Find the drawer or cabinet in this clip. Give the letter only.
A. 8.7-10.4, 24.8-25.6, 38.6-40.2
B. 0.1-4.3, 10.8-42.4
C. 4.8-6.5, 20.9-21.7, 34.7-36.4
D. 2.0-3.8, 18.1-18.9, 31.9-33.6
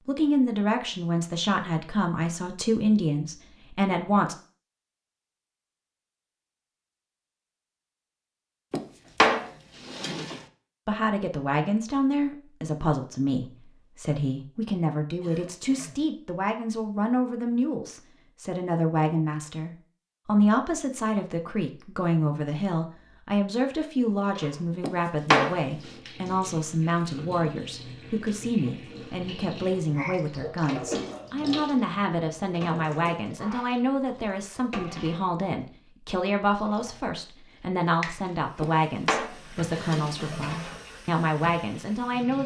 A.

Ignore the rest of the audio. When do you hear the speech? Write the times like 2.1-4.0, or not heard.
0.1-4.3, 10.8-42.4.